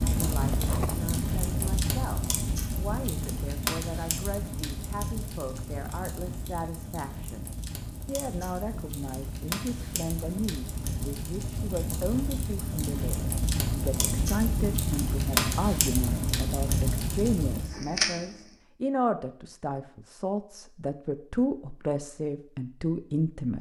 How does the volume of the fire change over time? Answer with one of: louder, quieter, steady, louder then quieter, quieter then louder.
quieter then louder.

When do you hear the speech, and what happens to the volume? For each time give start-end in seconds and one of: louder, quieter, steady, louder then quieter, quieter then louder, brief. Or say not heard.
0.1-23.5 louder.